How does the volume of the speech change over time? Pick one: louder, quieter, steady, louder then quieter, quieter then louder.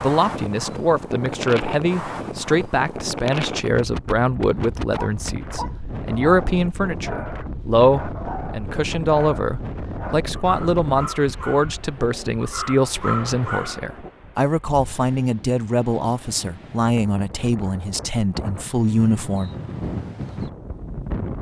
steady.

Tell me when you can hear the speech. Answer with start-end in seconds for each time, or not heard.
0.0-19.5.